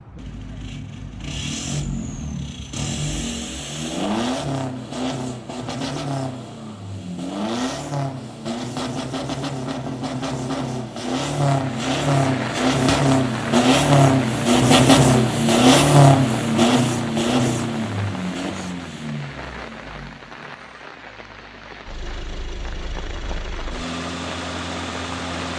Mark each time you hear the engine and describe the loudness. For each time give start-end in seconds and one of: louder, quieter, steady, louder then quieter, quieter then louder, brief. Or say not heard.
0.0-25.5 louder then quieter.